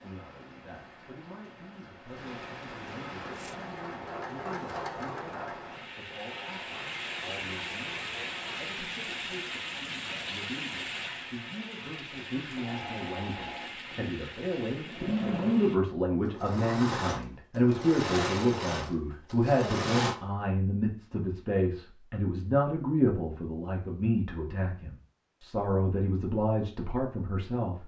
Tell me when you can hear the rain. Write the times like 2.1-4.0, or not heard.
0.0-15.8.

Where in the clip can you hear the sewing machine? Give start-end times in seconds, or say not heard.
3.1-8.8, 12.4-20.1.